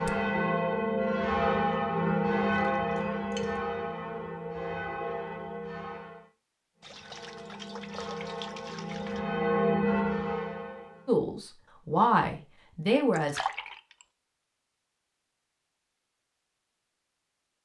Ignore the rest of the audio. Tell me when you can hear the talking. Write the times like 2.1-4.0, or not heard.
11.1-13.4.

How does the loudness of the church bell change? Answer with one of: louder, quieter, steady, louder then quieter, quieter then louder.
quieter then louder.